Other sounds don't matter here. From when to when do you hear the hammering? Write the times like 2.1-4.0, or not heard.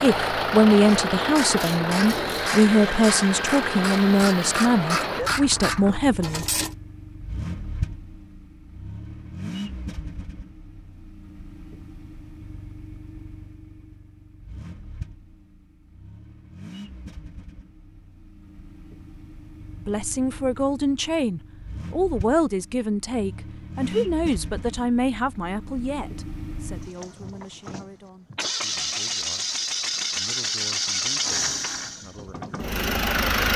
not heard.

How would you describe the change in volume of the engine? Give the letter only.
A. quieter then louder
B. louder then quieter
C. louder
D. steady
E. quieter
A.